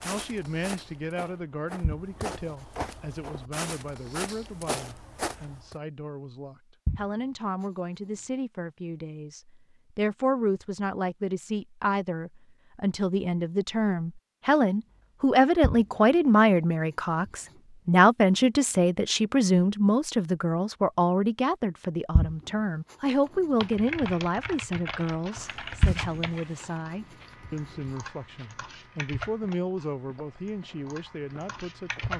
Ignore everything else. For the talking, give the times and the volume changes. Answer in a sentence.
The talking can be heard from 0.0 to 32.1 s, getting louder then quieter.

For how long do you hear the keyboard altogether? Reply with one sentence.
The keyboard can be heard for 9 seconds in total.